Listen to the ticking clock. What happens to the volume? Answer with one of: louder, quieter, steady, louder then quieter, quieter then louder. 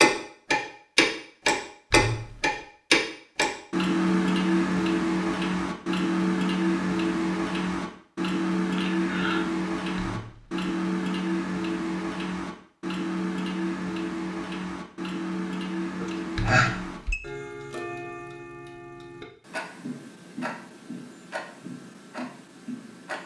quieter.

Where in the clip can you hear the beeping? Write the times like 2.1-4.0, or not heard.
1.9-2.5, 9.9-10.7, 16.4-17.2.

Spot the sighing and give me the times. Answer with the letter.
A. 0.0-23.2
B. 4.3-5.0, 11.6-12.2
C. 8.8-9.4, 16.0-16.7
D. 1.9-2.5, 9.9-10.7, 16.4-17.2
C.